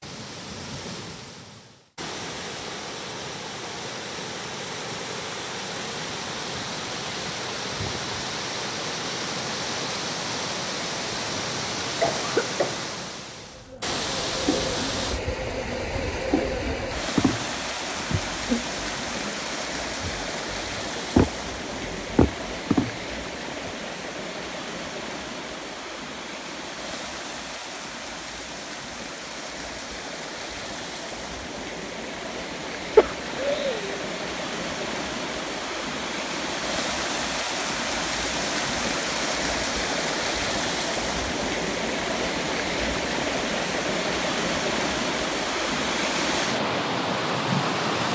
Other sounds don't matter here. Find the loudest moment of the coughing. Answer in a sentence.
The volume of the coughing peaks at 33 seconds.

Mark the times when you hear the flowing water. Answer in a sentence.
The flowing water can be heard from 0.0 to 48.0 s.